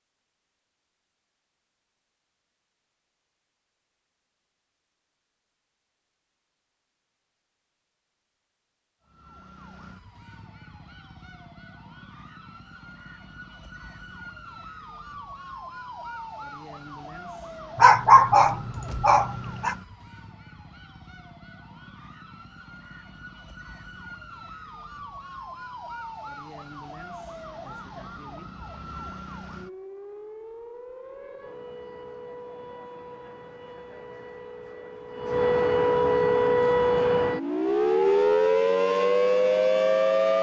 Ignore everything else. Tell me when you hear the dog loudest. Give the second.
18 s.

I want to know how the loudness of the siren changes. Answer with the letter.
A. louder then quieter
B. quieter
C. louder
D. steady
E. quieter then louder
C.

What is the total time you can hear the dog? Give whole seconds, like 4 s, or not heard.
2 s.